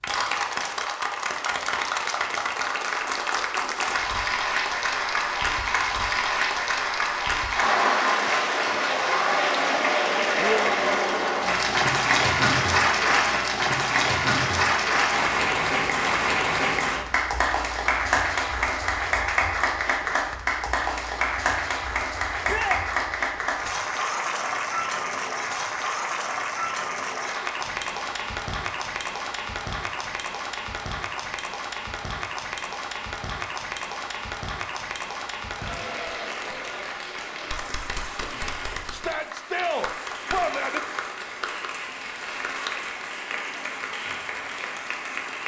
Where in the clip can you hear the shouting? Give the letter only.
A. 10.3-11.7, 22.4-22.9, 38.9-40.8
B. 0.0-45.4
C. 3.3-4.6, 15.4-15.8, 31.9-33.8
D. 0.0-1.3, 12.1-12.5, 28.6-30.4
A.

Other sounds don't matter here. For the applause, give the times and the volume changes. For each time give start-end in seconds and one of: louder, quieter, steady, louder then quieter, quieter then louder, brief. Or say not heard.
0.0-45.4 quieter.